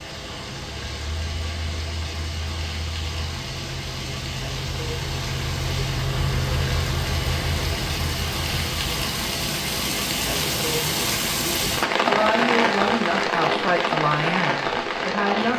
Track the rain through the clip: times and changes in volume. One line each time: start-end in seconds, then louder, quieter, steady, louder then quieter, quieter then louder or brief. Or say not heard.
0.0-15.5 louder.